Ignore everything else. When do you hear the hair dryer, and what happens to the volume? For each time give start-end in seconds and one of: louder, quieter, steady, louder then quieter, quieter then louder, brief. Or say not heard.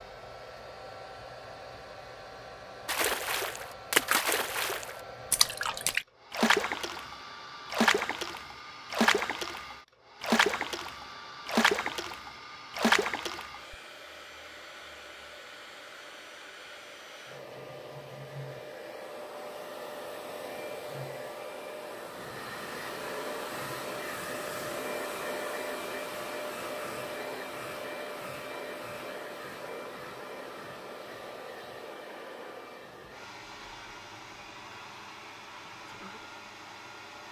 0.0-37.2 louder then quieter.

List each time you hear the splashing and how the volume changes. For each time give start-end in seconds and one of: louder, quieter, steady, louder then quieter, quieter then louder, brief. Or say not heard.
2.9-13.8 steady.